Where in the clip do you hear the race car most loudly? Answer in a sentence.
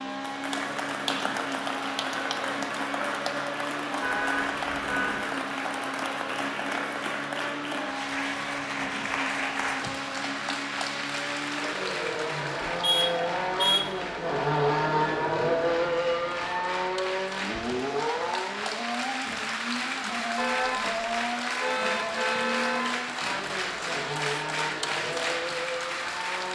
The volume of the race car peaks at 15 seconds.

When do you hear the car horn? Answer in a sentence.
The car horn can be heard from 4.0 to 5.2 s, from 12.8 to 13.9 s, from 20.4 to 20.9 s and from 21.6 to 22.9 s.